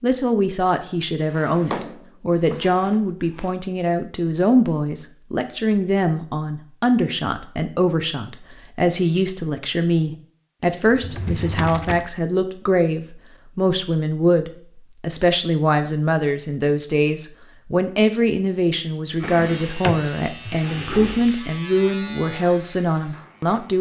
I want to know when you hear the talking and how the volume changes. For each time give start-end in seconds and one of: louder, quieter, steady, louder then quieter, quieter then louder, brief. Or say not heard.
0.0-23.7 steady.